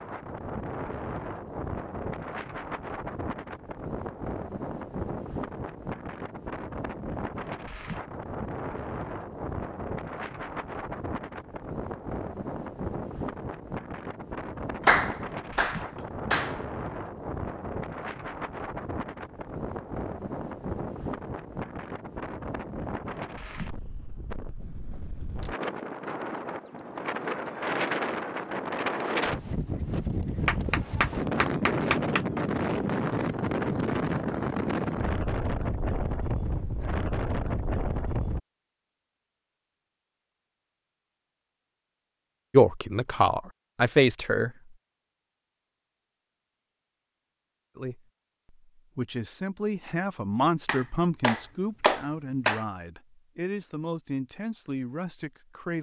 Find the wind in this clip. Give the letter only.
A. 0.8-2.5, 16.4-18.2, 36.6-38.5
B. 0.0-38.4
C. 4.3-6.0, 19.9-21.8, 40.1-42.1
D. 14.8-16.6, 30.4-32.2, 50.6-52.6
B.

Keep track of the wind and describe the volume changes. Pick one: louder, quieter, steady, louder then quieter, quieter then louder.
louder.